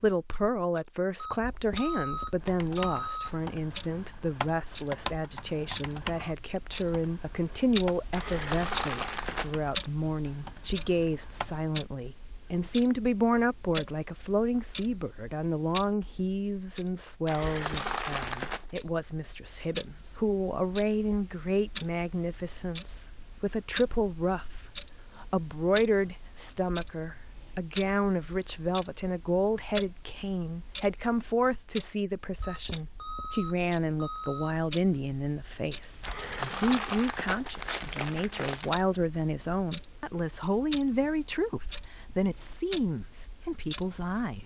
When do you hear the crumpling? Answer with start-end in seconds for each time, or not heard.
8.1-9.6, 17.2-18.6, 36.0-38.8.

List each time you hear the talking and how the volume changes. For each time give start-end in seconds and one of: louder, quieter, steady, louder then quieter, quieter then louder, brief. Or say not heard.
0.0-44.4 steady.